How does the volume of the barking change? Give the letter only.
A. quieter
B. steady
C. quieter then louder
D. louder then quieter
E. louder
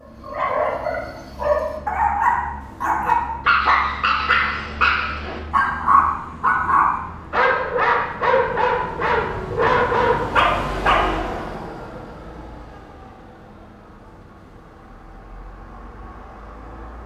B.